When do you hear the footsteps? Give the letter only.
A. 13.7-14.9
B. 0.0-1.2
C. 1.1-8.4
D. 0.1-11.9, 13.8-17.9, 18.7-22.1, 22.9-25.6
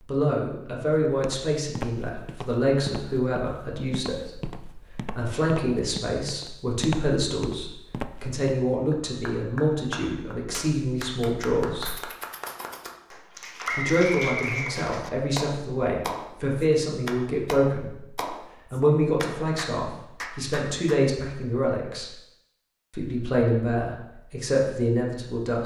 C.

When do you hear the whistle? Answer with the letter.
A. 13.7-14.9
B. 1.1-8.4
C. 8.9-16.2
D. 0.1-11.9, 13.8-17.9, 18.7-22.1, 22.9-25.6
A.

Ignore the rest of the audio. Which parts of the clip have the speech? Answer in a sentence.
The speech can be heard from 0.1 to 11.9 s, from 13.8 to 17.9 s, from 18.7 to 22.1 s and from 22.9 to 25.6 s.